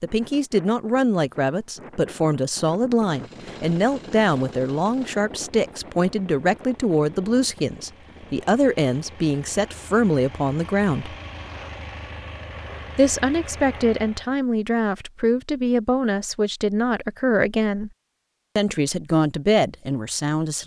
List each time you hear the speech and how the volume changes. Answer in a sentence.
The speech can be heard from 0.0 to 11.2 s, at a steady volume; from 12.9 to 17.9 s, at a steady volume; and briefly from 18.6 to 20.6 s.